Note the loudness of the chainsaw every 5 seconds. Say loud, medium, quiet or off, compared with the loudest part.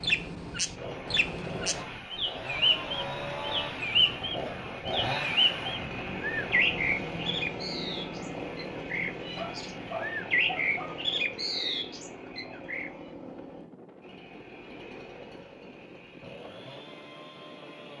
loud, loud, medium, medium.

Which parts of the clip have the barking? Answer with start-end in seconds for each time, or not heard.
9.3-10.9.